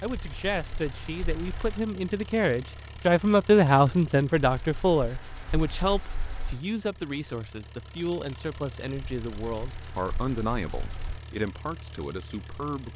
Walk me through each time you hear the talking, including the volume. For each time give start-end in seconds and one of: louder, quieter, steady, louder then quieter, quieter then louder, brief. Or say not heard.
0.0-12.9 louder then quieter.